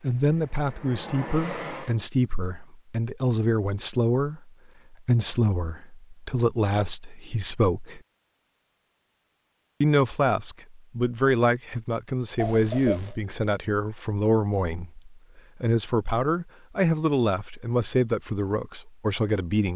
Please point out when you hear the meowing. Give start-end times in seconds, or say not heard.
12.3-13.2.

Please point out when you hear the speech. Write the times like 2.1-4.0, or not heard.
0.0-8.0, 9.8-19.7.